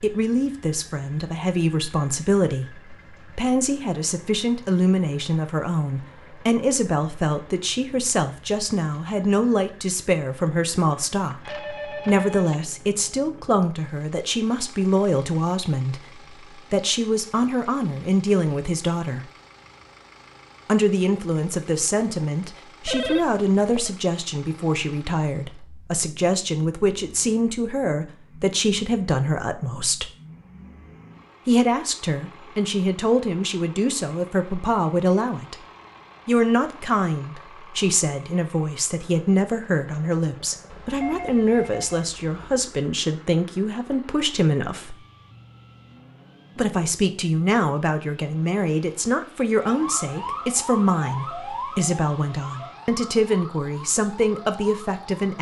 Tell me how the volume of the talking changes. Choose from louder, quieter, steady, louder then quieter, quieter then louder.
steady.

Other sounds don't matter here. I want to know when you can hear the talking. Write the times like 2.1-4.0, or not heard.
0.0-19.2, 20.6-30.1, 31.4-35.5, 36.2-45.0, 46.5-55.3.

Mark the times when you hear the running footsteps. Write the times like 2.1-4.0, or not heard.
not heard.